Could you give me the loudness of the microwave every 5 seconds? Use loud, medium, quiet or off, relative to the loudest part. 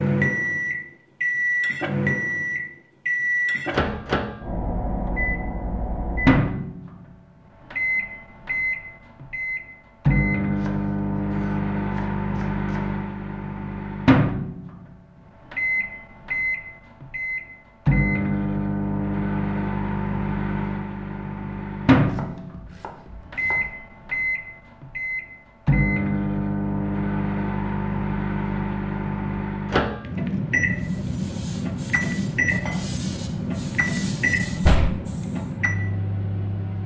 loud, loud, loud, loud, loud, loud, loud, medium.